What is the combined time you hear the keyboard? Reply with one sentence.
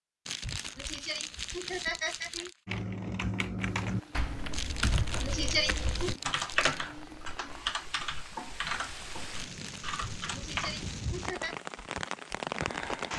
The keyboard can be heard for 8 seconds in total.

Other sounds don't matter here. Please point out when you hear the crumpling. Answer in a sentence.
The crumpling can be heard from 0.2 to 2.5 s, from 4.5 to 7.0 s and from 9.3 to 11.1 s.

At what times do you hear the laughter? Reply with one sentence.
The laughter can be heard from 0.4 to 2.5 s, from 4.9 to 5.9 s and from 10.0 to 11.6 s.